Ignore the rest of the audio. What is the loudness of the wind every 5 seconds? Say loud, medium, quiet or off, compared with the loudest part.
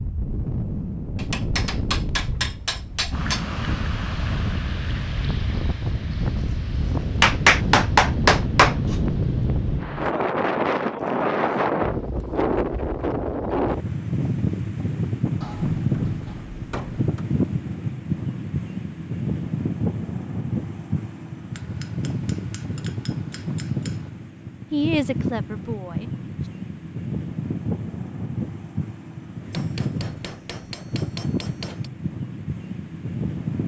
medium, loud, loud, loud, medium, medium, medium.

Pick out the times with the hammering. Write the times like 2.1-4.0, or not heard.
1.1-3.5, 7.2-8.9, 15.4-17.2, 21.6-24.1, 29.5-31.9.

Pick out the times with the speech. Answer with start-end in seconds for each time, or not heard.
24.7-26.2.